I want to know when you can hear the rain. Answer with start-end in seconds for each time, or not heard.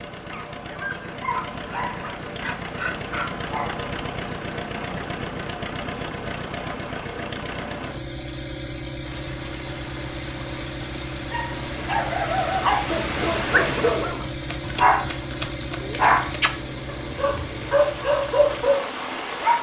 9.0-19.5.